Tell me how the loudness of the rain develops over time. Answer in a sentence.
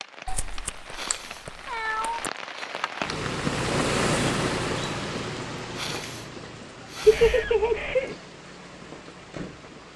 The volume of the rain goes up, then down.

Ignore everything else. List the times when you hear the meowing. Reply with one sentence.
The meowing can be heard from 0.2 to 2.3 s and from 7.0 to 8.2 s.